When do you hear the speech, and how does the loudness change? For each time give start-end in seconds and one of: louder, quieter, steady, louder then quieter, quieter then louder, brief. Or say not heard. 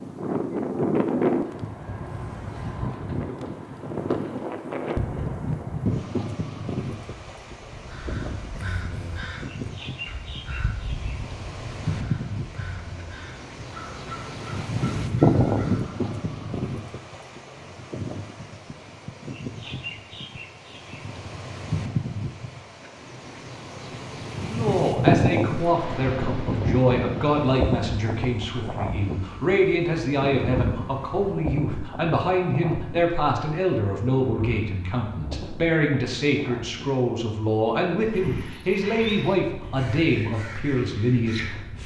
24.4-41.8 steady.